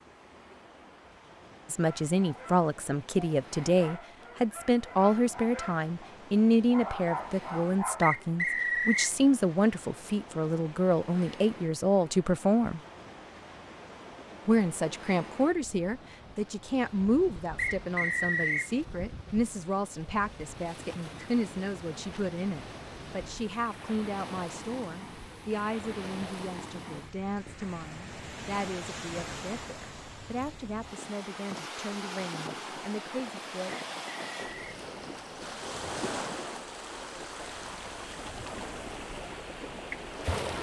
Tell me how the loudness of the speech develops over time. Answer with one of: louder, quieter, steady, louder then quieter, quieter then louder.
quieter.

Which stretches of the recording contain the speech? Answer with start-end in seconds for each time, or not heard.
1.7-12.8, 14.4-33.8.